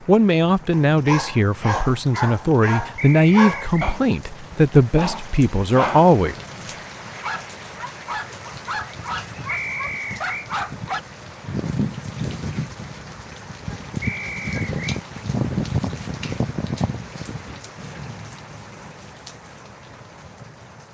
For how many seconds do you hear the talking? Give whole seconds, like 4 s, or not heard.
6 s.